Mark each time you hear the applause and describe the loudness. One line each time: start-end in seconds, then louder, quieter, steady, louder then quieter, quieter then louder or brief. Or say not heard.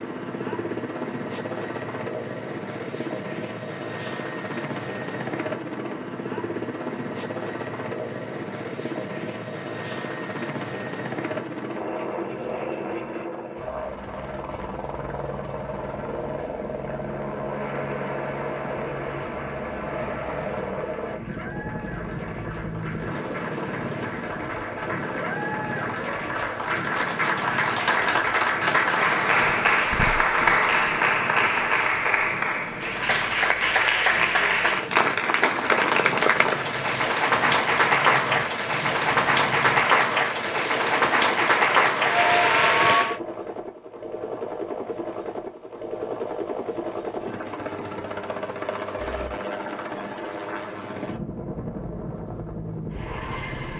17.4-43.2 louder.